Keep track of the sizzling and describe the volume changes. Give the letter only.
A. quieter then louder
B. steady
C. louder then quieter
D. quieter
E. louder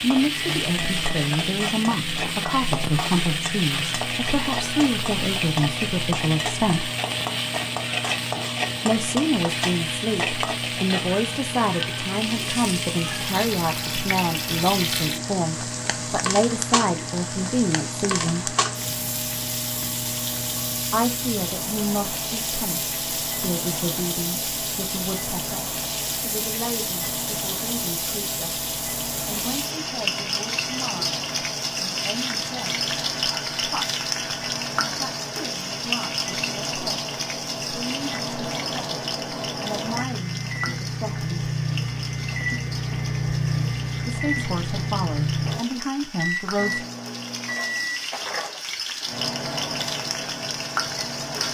D.